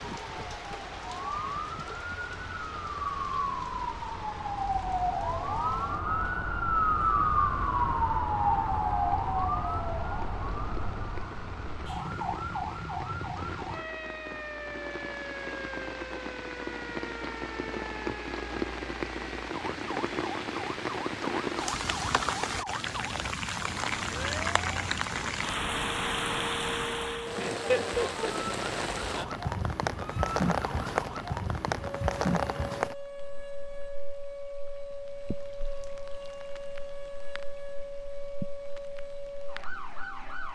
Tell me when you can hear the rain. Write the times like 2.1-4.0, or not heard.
0.0-40.5.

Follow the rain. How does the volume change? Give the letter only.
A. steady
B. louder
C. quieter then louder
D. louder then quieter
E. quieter
D.